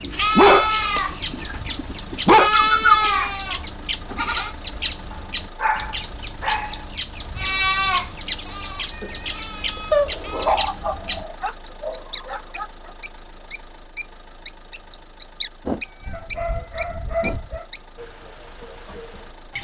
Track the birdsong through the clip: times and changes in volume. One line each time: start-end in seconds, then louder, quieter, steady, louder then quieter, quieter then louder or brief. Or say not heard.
0.0-19.5 louder.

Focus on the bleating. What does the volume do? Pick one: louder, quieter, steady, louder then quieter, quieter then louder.
quieter.